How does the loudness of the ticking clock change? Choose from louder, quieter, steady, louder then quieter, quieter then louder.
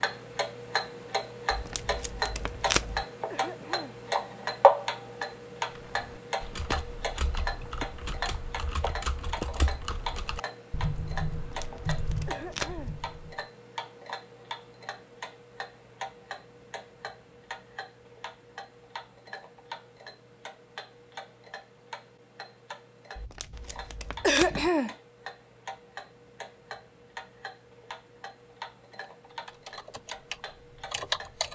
quieter.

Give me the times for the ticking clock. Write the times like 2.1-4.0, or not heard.
0.0-31.5.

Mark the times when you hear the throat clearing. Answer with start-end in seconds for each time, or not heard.
3.3-4.0, 12.2-12.9, 24.2-24.9.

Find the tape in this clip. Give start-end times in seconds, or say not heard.
1.5-3.0, 11.4-12.8, 23.1-24.6.